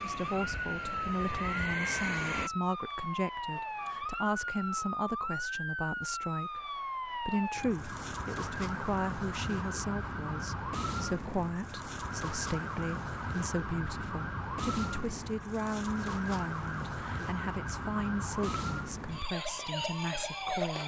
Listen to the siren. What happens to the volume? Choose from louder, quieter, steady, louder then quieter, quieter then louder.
steady.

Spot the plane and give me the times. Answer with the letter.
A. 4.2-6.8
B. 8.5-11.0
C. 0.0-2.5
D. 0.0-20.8
C.